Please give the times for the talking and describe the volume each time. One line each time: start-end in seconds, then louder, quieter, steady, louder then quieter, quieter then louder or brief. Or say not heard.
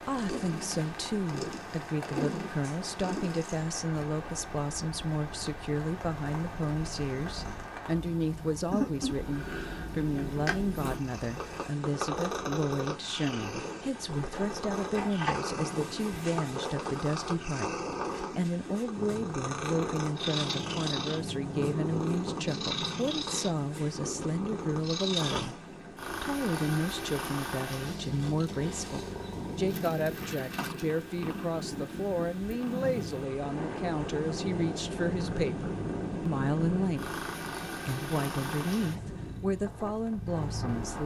0.0-41.0 steady.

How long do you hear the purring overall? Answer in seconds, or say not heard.
41 s.